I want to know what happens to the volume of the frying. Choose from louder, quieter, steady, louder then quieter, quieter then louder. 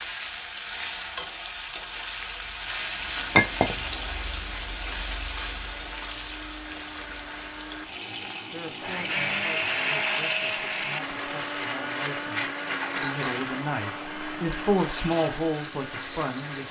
quieter.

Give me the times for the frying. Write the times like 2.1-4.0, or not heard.
0.0-16.6.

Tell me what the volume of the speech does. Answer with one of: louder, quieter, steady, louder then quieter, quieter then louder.
louder.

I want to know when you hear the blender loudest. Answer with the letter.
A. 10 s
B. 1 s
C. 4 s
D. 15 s
A.